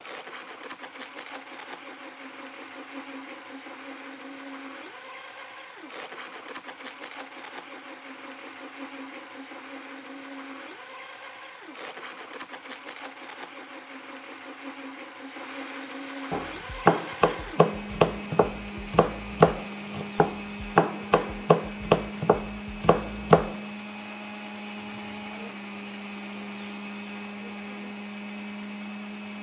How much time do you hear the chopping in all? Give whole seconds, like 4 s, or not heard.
7 s.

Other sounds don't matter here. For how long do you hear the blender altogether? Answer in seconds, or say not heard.
29 s.